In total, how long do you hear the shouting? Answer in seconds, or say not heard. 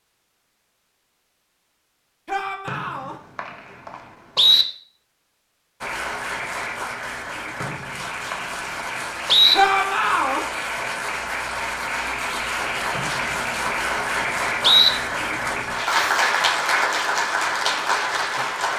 2 s.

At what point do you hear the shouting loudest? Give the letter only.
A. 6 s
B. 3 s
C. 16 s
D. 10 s
D.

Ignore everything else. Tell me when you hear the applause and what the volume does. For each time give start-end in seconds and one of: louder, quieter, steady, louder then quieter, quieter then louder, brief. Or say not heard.
5.8-18.7 louder.